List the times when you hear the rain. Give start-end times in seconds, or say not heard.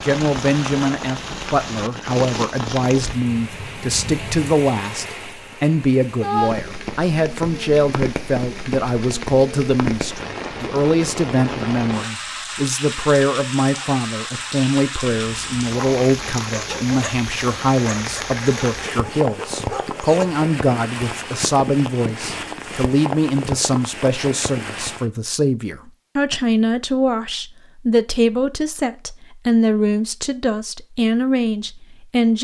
0.0-25.1.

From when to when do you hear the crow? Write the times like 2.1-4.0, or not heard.
not heard.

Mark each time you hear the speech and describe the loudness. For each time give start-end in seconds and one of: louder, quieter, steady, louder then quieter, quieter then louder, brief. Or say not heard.
0.0-32.4 steady.